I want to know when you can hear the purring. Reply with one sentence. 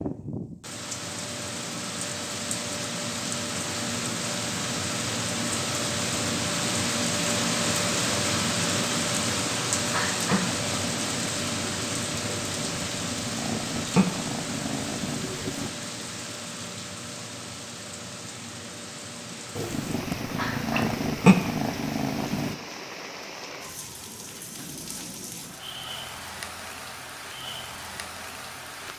The purring can be heard from 10.2 to 15.7 s and from 19.6 to 22.6 s.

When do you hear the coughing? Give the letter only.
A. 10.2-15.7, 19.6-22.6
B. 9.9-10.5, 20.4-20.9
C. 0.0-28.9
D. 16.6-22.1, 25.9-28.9
B.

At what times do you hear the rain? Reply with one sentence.
The rain can be heard from 0.0 to 28.9 s.